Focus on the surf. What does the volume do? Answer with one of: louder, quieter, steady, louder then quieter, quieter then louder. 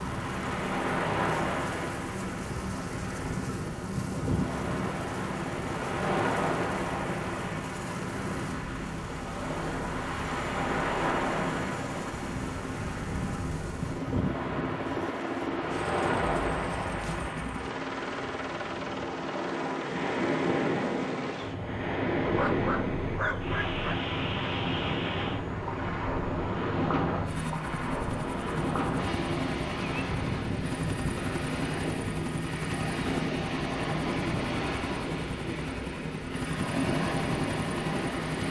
steady.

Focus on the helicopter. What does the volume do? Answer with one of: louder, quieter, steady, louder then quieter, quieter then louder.
steady.